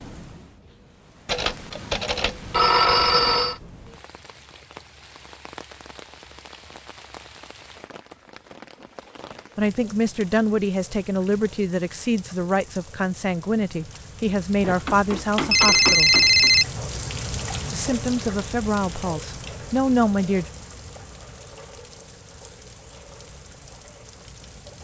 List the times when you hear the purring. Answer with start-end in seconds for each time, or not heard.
not heard.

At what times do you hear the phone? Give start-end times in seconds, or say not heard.
1.2-3.5, 14.6-16.6.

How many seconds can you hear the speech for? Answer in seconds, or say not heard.
9 s.